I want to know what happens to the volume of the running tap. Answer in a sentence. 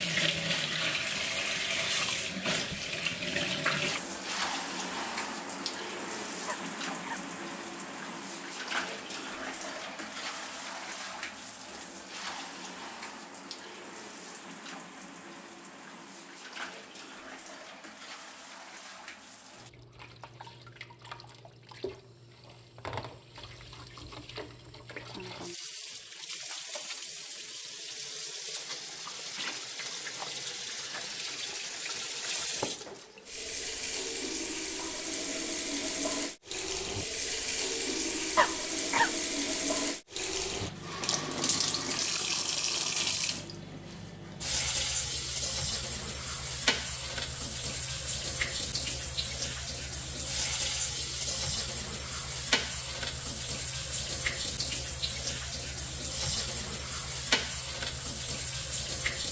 The volume of the running tap goes down, then up.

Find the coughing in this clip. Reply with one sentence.
The coughing can be heard from 6.5 to 7.2 s and from 38.4 to 39.1 s.